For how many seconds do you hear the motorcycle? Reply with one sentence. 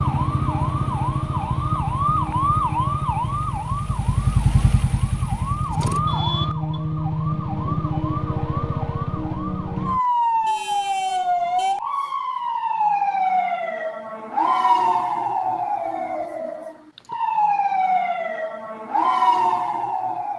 You can hear the motorcycle for 6 seconds altogether.